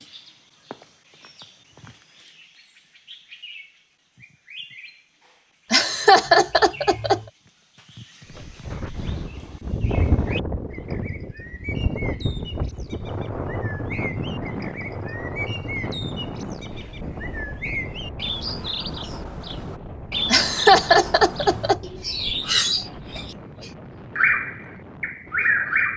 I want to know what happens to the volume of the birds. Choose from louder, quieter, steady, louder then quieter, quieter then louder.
louder.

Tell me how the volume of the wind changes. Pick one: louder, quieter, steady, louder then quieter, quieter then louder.
quieter.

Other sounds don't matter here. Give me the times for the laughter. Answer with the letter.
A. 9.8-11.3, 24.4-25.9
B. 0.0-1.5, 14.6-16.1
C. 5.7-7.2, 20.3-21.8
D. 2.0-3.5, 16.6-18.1
C.